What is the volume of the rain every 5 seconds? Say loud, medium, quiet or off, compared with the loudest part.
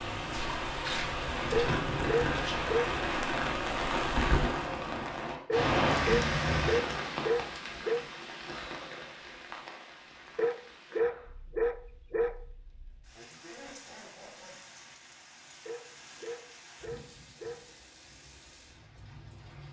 loud, loud, quiet, quiet.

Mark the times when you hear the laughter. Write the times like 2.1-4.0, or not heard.
13.2-14.6.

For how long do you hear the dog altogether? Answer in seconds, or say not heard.
8 s.